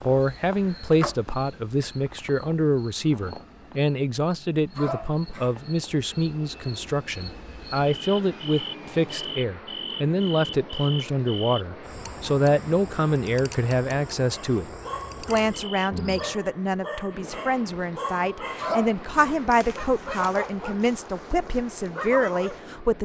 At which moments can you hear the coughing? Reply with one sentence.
The coughing can be heard from 4.8 to 5.5 s and from 18.6 to 19.4 s.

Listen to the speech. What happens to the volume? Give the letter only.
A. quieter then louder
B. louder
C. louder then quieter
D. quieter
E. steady
E.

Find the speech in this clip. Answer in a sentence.
You can hear the speech from 0.1 to 22.9 s.